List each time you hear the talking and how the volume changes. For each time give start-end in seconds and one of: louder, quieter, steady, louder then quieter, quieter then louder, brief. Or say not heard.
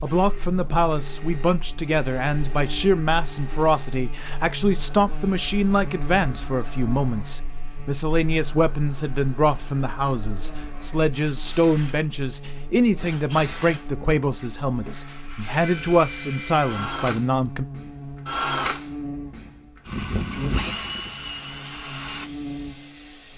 0.0-17.6 steady.